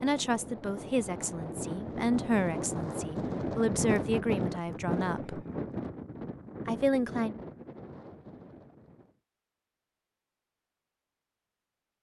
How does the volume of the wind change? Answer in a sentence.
The loudness of the wind goes up, then down.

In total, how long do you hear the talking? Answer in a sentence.
You can hear the talking for 6 seconds altogether.